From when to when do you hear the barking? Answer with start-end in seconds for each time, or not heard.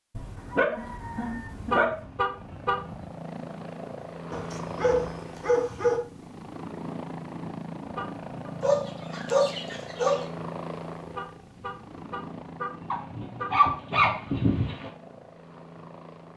0.1-1.9, 4.3-6.0, 8.6-10.2, 12.9-14.9.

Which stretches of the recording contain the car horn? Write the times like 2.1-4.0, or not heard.
1.6-3.1, 7.8-8.2, 11.1-13.6.